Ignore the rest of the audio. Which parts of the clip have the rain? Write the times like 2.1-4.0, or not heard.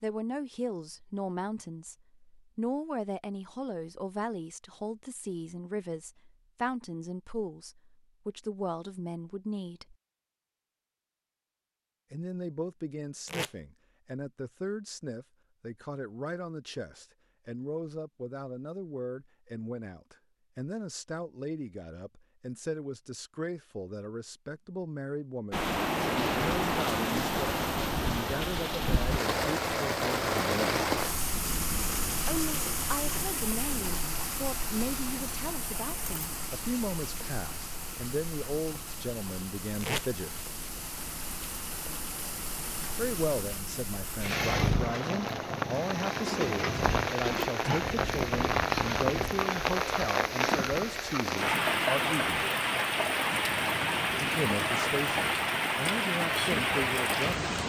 25.5-57.6.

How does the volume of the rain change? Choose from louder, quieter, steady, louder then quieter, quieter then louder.
quieter then louder.